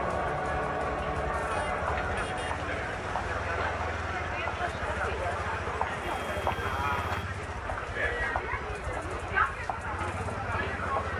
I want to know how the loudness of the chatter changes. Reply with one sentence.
The volume of the chatter stays about the same.